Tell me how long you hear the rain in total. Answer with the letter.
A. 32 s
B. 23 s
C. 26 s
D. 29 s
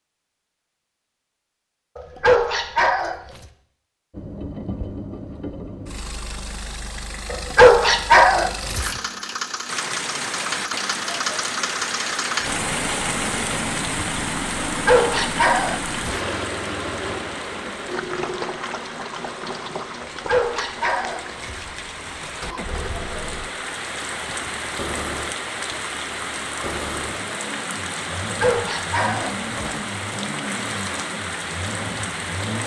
B.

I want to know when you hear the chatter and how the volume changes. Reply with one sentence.
You can't hear the chatter here.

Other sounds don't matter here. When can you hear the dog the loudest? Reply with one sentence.
The loudest moment of the dog is at 8 seconds.